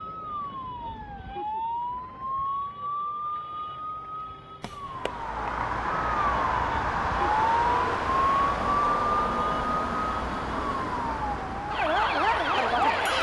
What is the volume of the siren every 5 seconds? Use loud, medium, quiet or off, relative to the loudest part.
medium, loud, loud.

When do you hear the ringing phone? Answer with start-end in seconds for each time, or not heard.
4.6-5.3.